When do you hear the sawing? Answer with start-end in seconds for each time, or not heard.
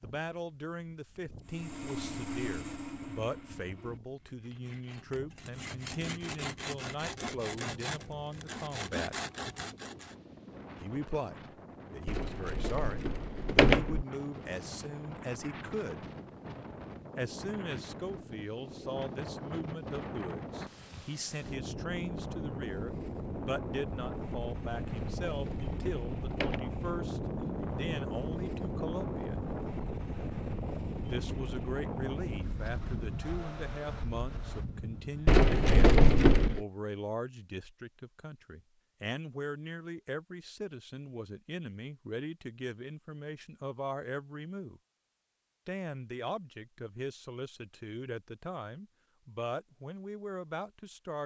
1.4-10.2.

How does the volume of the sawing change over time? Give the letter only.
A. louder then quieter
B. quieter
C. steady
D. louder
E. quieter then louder
E.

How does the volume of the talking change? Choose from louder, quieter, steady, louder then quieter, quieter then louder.
steady.